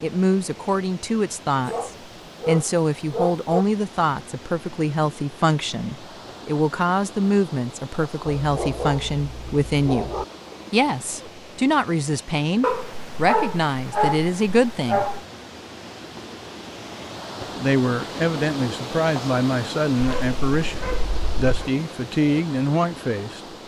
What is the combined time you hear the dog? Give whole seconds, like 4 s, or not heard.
8 s.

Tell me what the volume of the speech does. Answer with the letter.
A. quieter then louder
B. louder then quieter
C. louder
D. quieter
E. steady
E.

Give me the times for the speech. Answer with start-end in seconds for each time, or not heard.
0.0-15.1, 17.4-23.4.